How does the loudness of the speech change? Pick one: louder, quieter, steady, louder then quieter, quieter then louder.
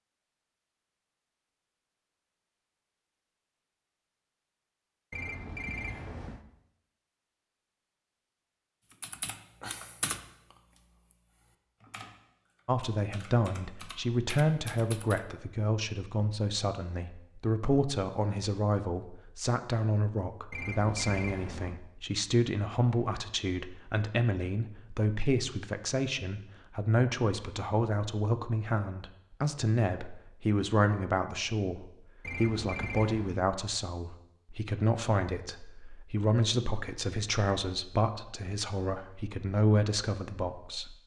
steady.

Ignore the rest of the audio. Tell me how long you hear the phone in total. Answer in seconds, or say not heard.
4 s.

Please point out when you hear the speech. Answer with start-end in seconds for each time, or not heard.
12.7-41.0.